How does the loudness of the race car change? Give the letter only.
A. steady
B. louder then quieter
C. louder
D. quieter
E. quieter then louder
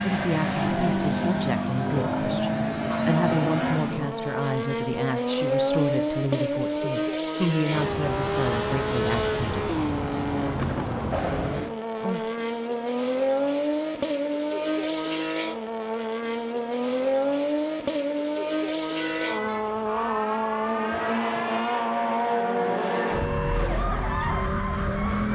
A.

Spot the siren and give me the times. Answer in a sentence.
The siren can be heard from 0.0 to 4.2 s and from 18.9 to 25.2 s.